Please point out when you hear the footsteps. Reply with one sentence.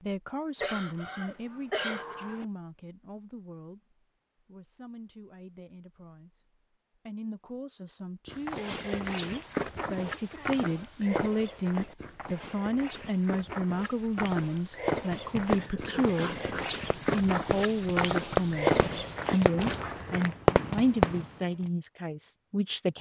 You can hear the footsteps from 8.2 to 20.4 s.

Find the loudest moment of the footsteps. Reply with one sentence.
The loudest moment of the footsteps is at 19 seconds.